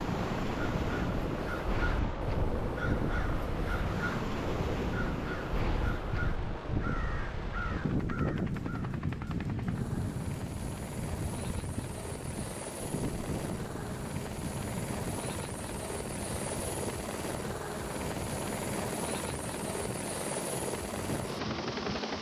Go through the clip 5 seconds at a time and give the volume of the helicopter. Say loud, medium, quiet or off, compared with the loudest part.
medium, medium, medium, loud, loud.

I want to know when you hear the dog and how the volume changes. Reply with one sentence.
The dog can't be heard in this clip.